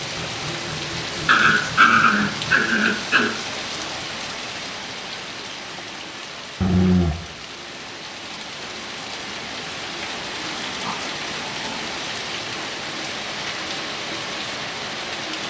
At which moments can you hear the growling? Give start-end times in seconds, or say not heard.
1.2-3.3, 6.6-7.2, 10.8-11.9.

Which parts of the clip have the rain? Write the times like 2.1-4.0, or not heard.
0.0-15.4.